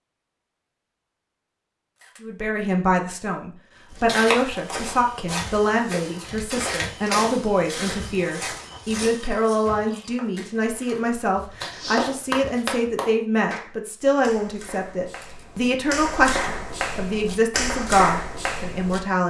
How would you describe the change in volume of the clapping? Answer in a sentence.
The loudness of the clapping goes down, then up.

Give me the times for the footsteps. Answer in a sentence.
The footsteps can be heard from 4.0 to 12.7 s.